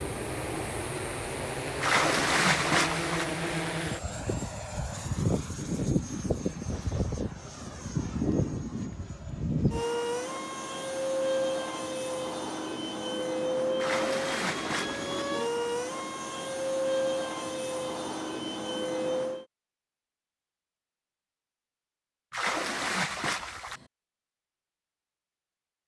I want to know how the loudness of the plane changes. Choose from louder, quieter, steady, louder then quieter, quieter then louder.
steady.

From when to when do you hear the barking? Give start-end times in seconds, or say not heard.
not heard.